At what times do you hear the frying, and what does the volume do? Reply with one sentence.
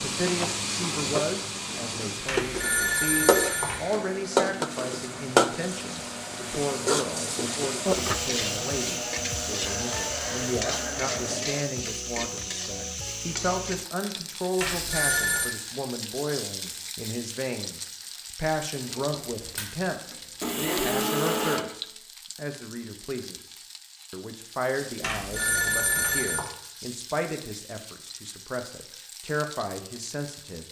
The frying can be heard from 0.0 to 30.6 s, getting quieter.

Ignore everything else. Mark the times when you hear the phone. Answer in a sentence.
You can hear the phone from 2.2 to 3.9 s, from 14.6 to 15.6 s and from 25.0 to 26.5 s.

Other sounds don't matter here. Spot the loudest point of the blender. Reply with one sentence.
The volume of the blender peaks at 21 seconds.